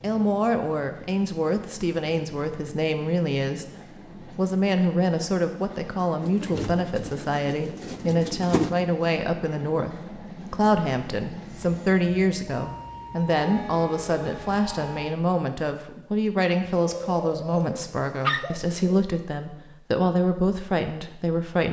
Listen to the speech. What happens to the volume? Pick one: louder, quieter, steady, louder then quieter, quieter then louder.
steady.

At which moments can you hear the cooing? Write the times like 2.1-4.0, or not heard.
6.2-8.8, 16.6-19.1.